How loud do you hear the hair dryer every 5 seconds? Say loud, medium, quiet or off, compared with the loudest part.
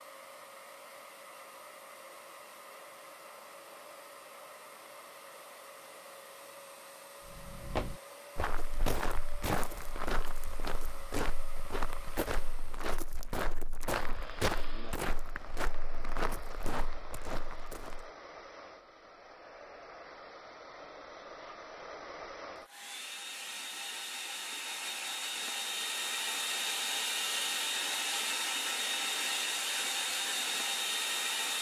quiet, quiet, quiet, quiet, medium, loud, loud.